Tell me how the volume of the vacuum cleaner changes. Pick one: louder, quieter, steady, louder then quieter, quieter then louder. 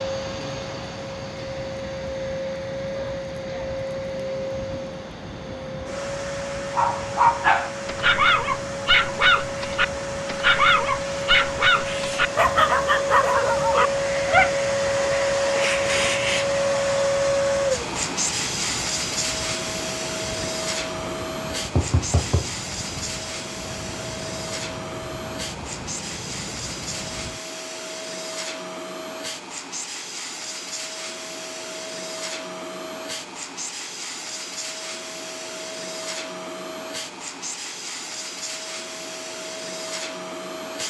louder then quieter.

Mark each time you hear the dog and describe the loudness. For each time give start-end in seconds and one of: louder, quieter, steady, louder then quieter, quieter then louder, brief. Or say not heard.
6.8-14.5 steady.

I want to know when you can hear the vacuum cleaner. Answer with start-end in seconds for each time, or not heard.
0.0-40.8.